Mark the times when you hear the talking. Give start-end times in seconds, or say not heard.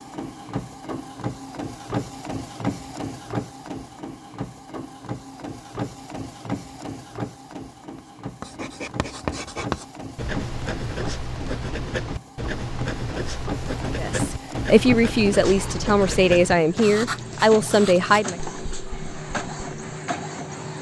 13.9-18.4.